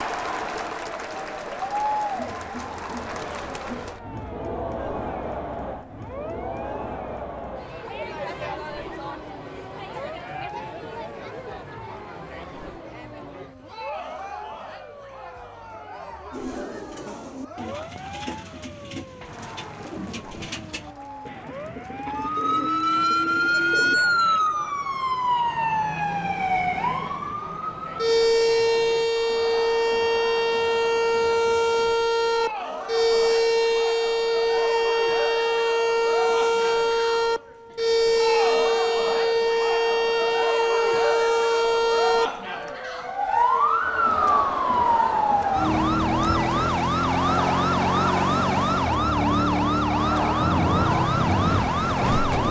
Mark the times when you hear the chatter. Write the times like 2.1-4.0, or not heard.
0.0-52.4.